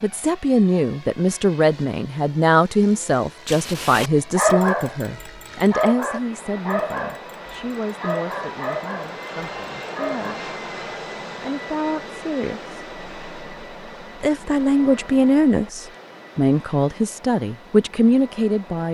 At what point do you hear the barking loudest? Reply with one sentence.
The volume of the barking peaks at 5 seconds.